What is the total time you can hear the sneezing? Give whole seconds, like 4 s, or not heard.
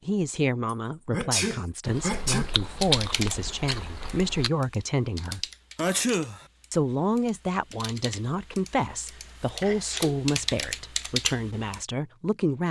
4 s.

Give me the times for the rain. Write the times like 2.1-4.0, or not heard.
not heard.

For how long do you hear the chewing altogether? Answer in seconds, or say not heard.
3 s.